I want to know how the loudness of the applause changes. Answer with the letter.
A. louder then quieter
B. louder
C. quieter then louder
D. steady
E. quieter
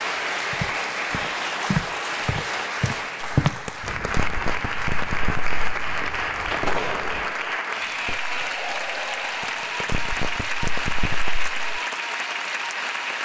D.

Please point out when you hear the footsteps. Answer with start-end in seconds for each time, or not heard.
0.5-7.3.